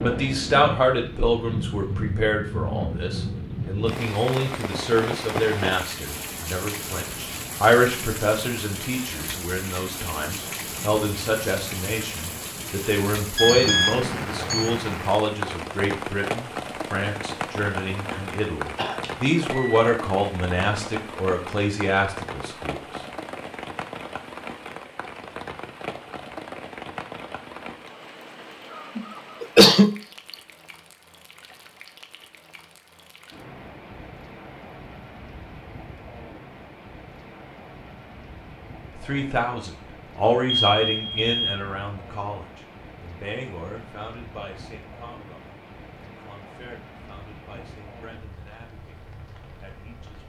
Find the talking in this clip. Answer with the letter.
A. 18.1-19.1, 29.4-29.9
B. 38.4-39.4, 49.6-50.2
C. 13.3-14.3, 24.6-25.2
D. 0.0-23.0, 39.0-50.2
D.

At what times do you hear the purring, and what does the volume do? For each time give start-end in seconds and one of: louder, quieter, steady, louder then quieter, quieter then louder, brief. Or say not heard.
not heard.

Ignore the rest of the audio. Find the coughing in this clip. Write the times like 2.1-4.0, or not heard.
18.1-19.1, 29.4-29.9.